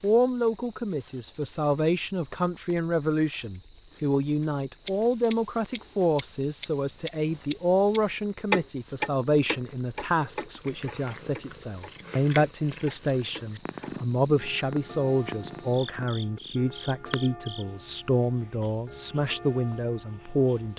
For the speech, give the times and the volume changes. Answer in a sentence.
The speech can be heard from 0.0 to 20.7 s, at a steady volume.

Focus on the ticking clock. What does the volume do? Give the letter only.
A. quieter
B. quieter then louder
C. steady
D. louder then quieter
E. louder
A.